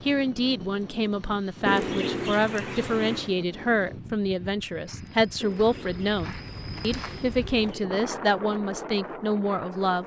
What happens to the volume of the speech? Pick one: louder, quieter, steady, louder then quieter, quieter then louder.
steady.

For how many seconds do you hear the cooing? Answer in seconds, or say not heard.
4 s.